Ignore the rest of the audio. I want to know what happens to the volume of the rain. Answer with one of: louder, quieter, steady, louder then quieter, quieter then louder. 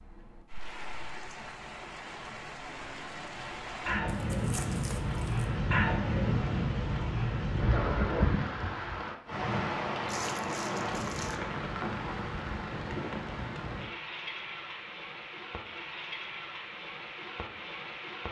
louder then quieter.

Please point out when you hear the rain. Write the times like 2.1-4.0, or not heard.
0.0-18.2.